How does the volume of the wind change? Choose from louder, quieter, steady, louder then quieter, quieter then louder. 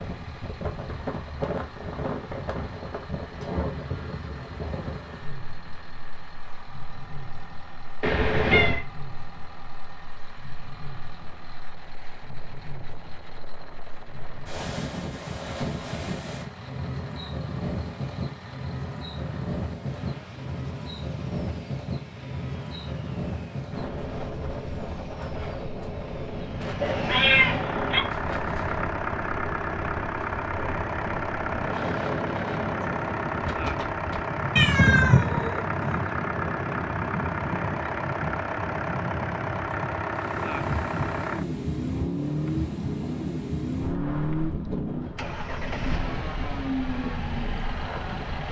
steady.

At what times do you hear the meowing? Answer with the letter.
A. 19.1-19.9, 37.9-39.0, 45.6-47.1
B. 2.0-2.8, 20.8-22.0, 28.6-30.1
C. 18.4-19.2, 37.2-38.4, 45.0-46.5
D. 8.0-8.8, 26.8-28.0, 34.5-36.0
D.